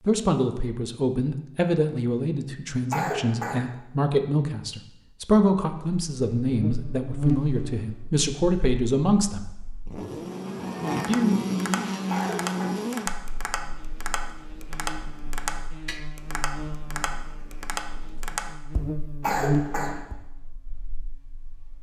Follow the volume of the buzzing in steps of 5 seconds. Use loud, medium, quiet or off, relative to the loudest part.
off, loud, loud, loud, quiet.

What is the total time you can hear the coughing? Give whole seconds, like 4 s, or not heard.
2 s.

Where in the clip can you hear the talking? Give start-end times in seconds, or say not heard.
0.0-9.4, 11.1-11.5.